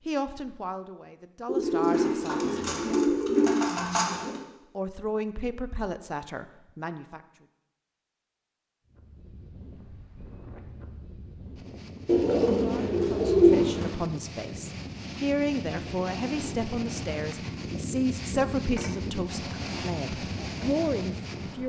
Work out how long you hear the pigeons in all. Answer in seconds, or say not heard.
5 s.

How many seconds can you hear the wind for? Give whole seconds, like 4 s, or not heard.
13 s.